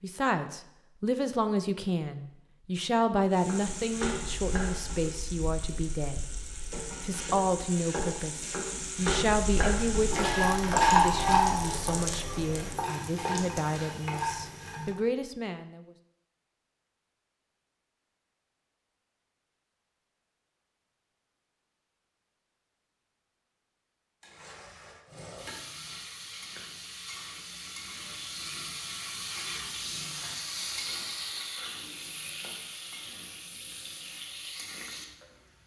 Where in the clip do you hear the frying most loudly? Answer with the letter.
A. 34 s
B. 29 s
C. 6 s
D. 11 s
D.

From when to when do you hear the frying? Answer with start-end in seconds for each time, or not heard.
3.3-15.0, 24.2-35.6.